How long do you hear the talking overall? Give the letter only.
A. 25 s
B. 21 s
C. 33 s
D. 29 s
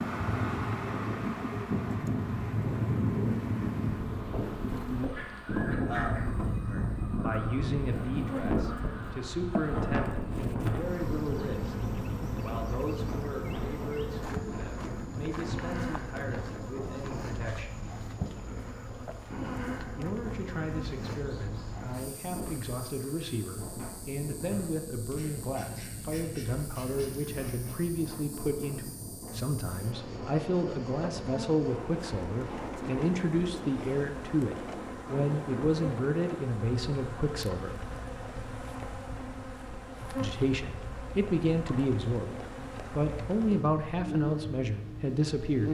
C.